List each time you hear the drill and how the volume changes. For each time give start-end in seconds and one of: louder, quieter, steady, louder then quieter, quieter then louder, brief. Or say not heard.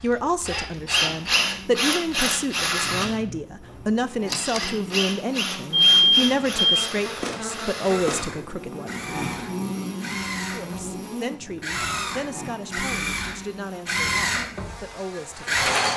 0.0-15.9 quieter then louder.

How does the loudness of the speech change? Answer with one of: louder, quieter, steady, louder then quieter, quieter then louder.
quieter.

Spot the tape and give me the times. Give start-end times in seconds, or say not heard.
4.2-4.7.